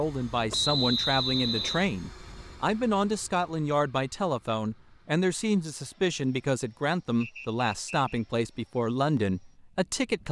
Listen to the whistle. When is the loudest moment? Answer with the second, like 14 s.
1 s.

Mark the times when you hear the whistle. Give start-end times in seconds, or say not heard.
0.5-1.9, 7.2-8.2.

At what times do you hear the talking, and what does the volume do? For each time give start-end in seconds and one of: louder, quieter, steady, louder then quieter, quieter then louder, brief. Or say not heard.
0.0-10.2 steady.